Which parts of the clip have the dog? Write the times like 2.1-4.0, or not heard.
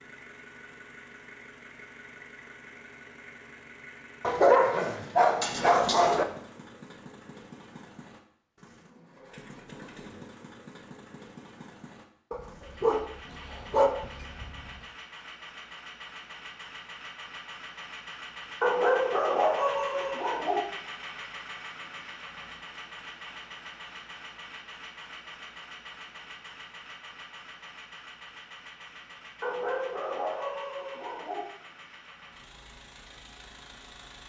4.2-6.2, 12.3-14.6, 18.6-20.6, 29.4-31.4.